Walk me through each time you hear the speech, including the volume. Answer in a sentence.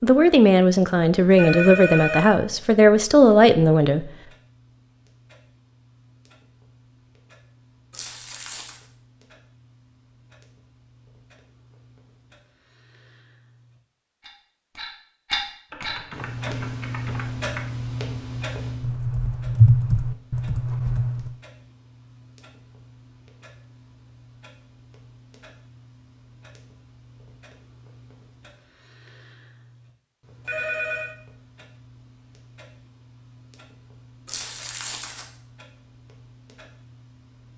The speech can be heard from 0.0 to 4.1 s, at a steady volume.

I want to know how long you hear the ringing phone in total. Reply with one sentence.
The ringing phone can be heard for 2 seconds in total.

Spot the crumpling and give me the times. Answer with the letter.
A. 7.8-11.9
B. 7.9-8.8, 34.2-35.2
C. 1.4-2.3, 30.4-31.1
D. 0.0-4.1
B.